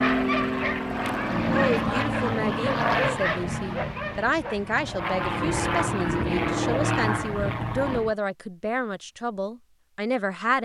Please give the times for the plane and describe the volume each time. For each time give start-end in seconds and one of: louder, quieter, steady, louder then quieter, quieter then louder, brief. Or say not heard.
0.0-8.2 quieter then louder.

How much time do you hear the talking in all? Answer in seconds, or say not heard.
9 s.